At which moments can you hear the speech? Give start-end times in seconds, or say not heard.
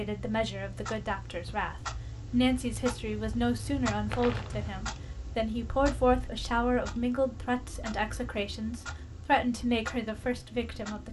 0.0-11.0.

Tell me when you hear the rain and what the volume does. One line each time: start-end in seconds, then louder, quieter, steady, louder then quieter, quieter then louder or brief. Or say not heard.
not heard.